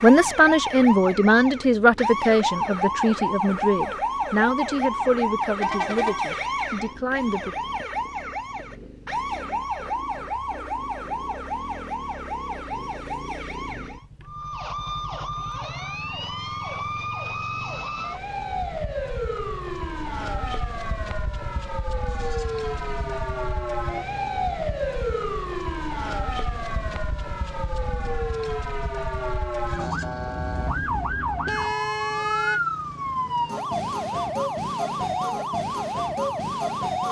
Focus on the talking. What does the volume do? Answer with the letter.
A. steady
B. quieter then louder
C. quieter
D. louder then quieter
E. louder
C.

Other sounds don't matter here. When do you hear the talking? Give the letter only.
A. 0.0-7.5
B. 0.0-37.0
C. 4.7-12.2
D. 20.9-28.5
A.